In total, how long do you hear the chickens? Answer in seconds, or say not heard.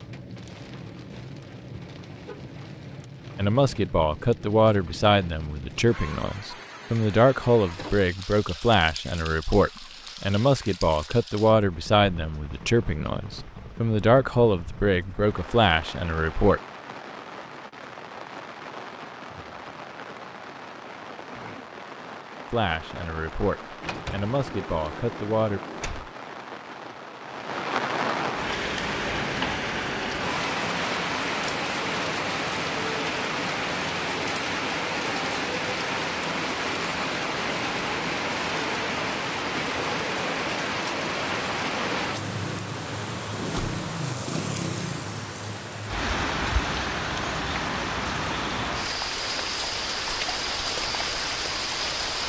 not heard.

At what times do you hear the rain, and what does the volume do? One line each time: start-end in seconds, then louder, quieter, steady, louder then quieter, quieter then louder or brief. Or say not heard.
0.0-52.2 louder.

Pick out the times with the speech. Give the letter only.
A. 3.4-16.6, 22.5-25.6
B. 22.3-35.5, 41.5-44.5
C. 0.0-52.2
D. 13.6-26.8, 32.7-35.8
A.